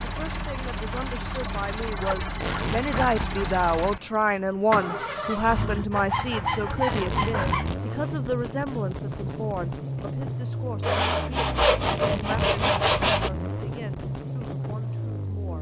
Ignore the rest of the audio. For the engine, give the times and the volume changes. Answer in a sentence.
The engine can be heard from 0.0 to 15.5 s, at a steady volume.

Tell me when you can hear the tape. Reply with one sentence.
The tape can be heard from 2.2 to 3.4 s, from 6.7 to 7.8 s and from 11.7 to 12.8 s.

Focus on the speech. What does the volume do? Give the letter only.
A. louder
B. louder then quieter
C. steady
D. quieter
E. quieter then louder
B.